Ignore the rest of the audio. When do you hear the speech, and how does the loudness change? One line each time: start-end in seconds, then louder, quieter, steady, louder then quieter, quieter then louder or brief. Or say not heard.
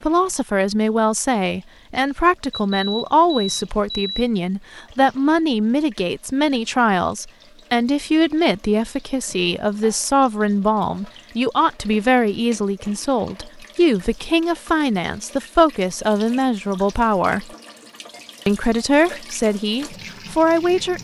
0.0-17.5 steady
18.4-20.9 brief.